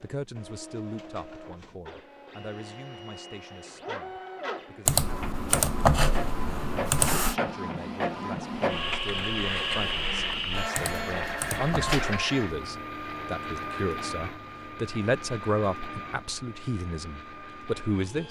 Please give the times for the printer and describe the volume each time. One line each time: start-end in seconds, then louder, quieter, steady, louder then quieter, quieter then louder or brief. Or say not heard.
0.0-18.2 louder then quieter.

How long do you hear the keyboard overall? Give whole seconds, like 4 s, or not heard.
4 s.